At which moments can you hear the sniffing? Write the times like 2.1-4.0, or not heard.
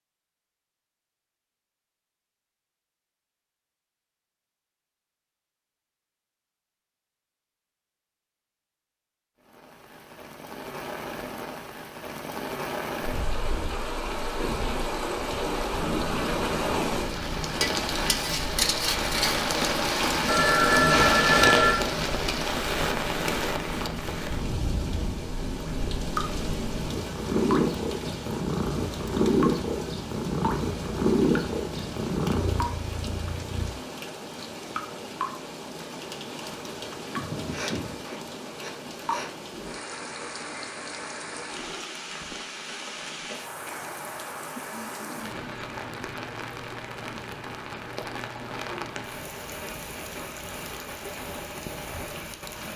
37.5-39.3.